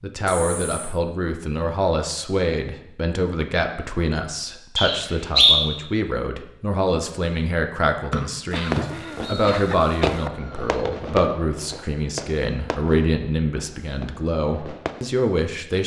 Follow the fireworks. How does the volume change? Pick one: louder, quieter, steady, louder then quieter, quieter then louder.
quieter.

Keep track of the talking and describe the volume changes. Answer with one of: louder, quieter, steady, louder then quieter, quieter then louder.
steady.